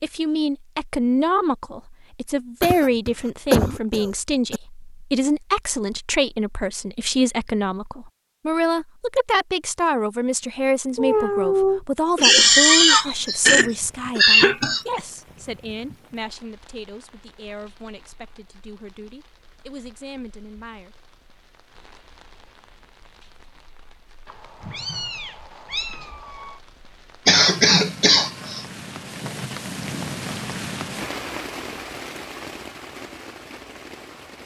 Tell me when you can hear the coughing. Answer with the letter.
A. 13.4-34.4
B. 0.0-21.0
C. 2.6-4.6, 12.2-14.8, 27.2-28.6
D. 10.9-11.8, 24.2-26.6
C.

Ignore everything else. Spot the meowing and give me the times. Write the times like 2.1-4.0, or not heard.
10.9-11.8, 24.2-26.6.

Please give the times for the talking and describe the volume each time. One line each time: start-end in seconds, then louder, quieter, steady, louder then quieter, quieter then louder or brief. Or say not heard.
0.0-21.0 quieter.